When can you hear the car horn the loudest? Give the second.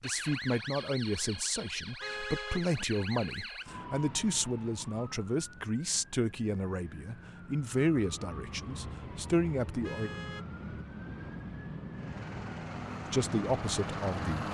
2 s.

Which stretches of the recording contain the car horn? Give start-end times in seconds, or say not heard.
1.7-2.6, 9.8-10.4.